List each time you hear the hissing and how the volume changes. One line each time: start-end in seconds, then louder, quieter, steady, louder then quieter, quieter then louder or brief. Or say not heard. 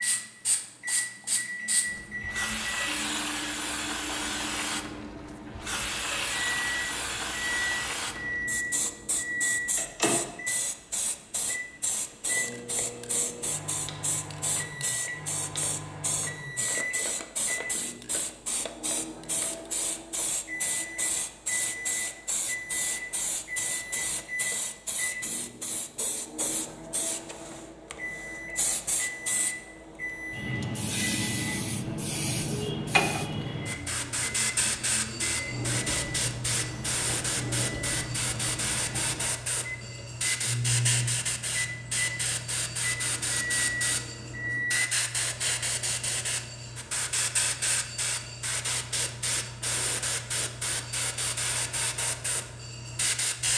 0.0-53.5 steady.